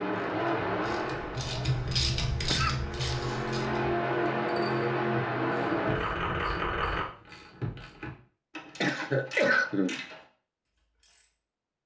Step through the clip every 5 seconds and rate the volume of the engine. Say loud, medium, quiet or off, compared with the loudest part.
loud, loud, off.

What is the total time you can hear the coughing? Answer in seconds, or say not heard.
2 s.